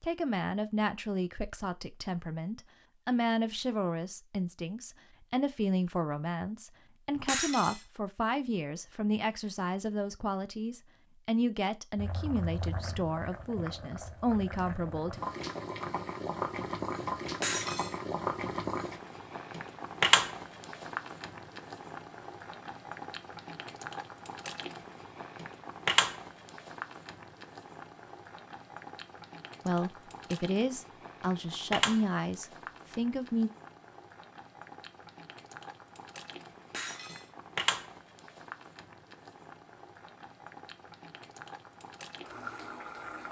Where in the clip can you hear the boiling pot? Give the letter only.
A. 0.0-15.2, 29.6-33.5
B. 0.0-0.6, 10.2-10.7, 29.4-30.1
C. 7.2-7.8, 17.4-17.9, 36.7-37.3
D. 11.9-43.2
D.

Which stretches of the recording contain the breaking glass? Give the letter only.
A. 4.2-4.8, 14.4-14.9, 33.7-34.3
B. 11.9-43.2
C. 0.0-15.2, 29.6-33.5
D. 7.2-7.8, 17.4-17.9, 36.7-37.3
D.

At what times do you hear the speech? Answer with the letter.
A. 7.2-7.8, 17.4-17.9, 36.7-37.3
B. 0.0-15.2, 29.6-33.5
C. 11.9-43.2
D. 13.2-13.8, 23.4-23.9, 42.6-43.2
B.